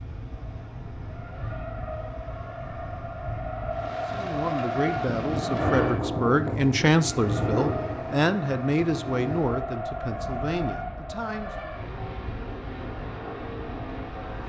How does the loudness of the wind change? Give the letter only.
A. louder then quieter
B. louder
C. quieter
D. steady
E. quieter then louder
A.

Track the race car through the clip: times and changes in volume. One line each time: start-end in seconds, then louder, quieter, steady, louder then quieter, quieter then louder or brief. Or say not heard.
0.2-14.4 louder then quieter.